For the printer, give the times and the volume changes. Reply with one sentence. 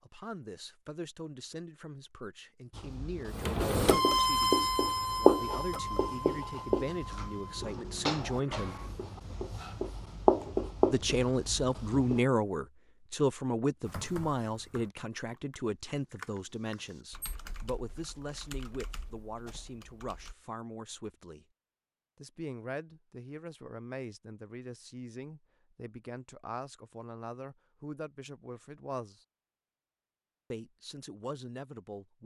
The printer can be heard from 3.3 to 9.1 s, getting quieter.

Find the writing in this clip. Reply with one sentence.
The writing can be heard from 2.8 to 12.2 s.